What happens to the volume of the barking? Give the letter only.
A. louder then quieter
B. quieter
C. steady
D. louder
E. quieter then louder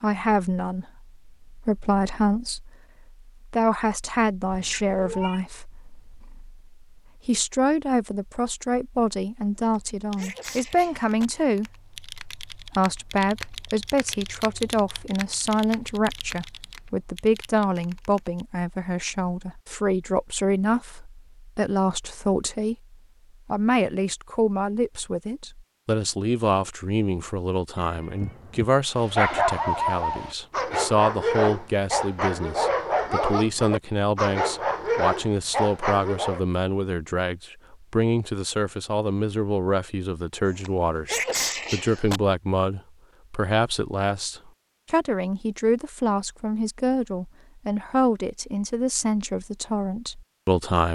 C.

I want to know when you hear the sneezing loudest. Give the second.
41 s.